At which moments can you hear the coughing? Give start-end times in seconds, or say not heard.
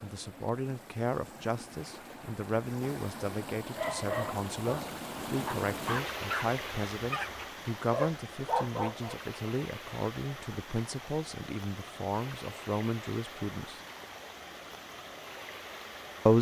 not heard.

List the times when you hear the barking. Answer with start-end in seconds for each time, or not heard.
3.6-9.2.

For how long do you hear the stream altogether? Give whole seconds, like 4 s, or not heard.
16 s.